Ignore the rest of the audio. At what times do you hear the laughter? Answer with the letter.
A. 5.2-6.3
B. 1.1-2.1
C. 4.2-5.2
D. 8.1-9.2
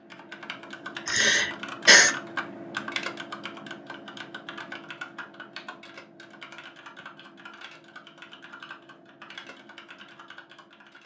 B.